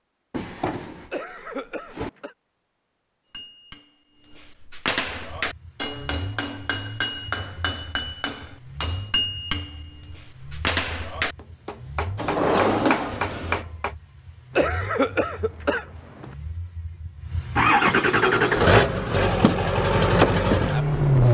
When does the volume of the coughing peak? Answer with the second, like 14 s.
15 s.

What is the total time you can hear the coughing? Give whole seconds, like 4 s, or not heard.
3 s.